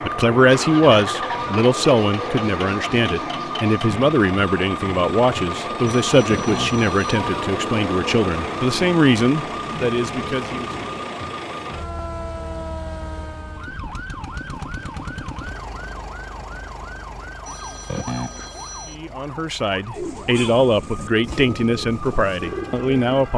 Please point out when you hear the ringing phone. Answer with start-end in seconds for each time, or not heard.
6.1-7.2, 17.4-18.9.